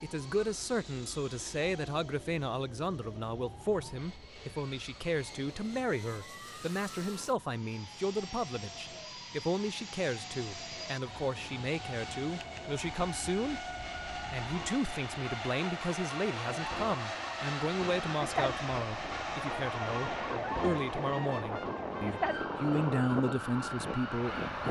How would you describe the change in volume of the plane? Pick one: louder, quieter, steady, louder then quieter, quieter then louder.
louder.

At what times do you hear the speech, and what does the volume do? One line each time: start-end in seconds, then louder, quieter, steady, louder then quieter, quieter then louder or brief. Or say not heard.
0.0-24.6 steady.